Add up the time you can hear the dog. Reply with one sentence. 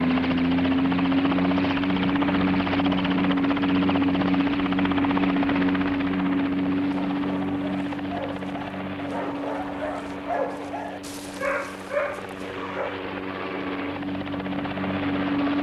You can hear the dog for 6 seconds altogether.